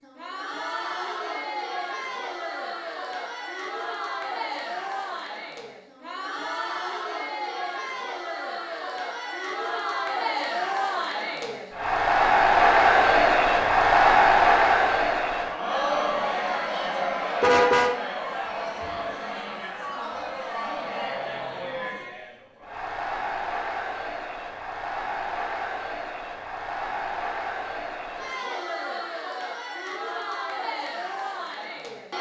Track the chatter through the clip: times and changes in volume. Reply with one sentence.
The chatter can be heard from 0.0 to 32.1 s, getting louder then quieter.